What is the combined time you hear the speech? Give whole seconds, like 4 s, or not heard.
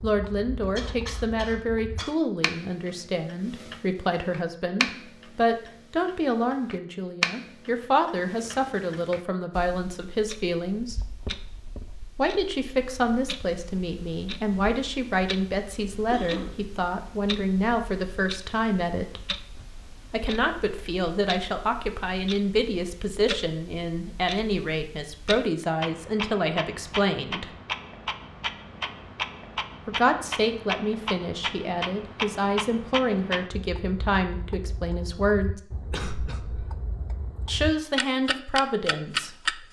33 s.